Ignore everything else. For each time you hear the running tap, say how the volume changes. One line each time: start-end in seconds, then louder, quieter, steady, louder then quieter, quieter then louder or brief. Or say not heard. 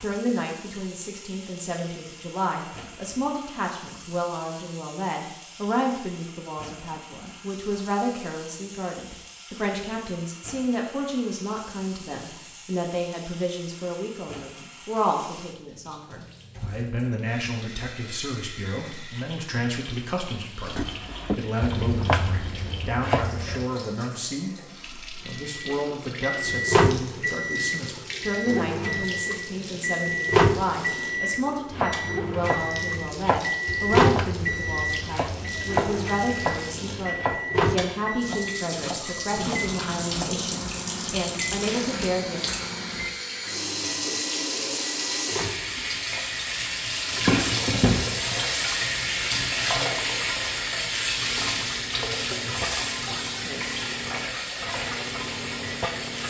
0.0-56.2 louder.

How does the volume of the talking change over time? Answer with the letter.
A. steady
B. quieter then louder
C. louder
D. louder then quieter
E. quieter
A.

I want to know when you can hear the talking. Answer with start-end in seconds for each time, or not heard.
0.0-42.4.